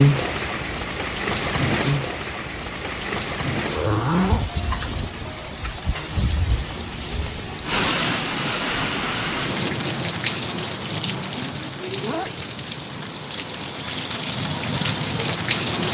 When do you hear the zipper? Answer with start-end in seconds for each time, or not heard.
3.6-4.5, 10.8-12.3.